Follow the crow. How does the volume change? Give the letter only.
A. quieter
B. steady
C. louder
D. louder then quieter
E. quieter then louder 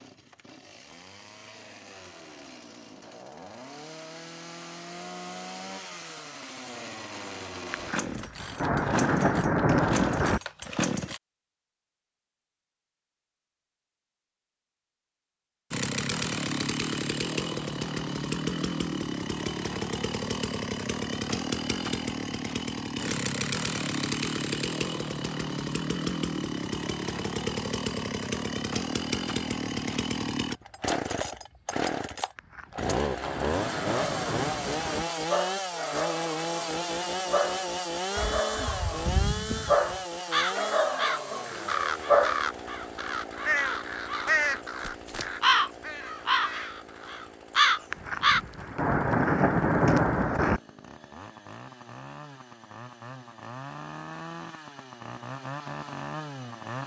C.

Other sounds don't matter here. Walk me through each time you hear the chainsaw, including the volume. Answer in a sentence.
You can hear the chainsaw from 0.0 to 11.2 s, getting louder; and from 15.7 to 56.8 s, getting quieter.